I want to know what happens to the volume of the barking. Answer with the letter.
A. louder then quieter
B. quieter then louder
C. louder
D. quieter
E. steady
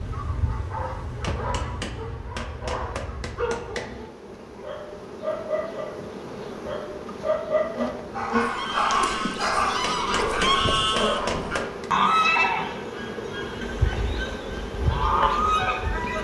C.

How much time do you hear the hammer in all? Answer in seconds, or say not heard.
5 s.